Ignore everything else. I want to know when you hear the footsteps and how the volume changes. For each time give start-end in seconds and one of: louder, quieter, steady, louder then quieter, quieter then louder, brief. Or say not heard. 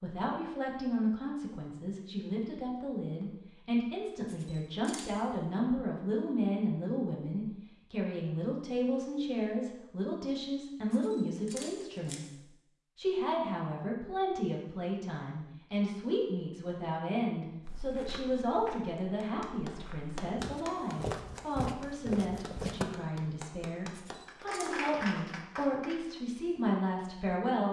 17.6-22.9 quieter then louder.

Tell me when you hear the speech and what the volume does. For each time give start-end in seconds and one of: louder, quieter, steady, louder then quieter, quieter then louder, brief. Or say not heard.
0.0-27.6 steady.